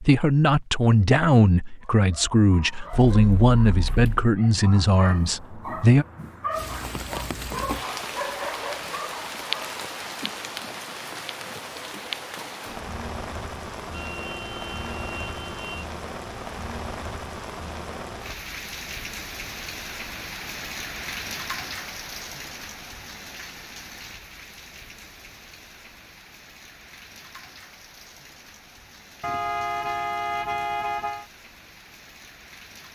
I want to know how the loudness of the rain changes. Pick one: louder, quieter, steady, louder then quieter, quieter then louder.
quieter.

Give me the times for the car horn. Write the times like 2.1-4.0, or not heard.
2.9-4.1, 13.9-15.7, 29.2-31.2.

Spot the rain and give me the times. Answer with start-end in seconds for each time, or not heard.
6.5-32.9.